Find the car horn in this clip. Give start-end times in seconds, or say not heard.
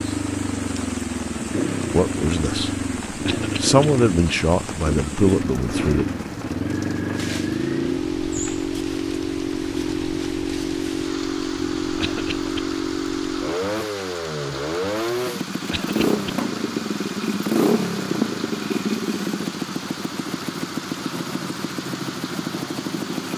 not heard.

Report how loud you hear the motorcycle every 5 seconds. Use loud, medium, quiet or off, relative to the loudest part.
loud, loud, loud, loud, medium.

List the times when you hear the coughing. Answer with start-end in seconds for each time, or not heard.
3.2-3.8, 12.0-12.6, 15.7-16.4.